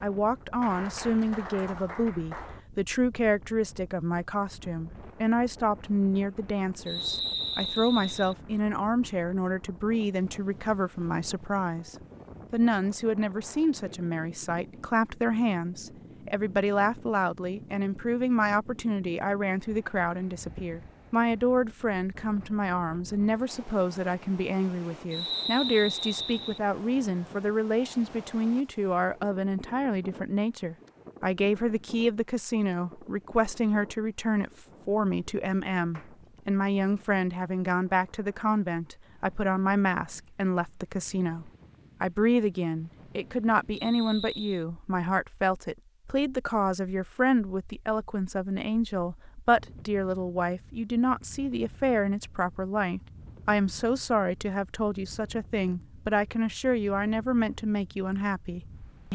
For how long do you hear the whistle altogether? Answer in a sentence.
The whistle can be heard for 4 seconds in total.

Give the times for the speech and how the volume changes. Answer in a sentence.
You can hear the speech from 0.0 to 59.1 s, at a steady volume.